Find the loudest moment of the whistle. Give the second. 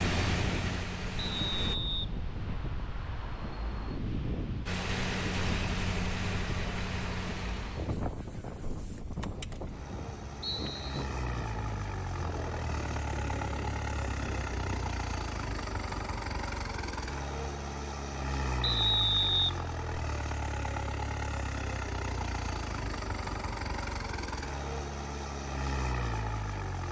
19 s.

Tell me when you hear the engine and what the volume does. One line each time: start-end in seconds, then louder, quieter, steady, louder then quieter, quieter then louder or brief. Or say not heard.
0.0-1.8 brief
4.7-26.8 steady.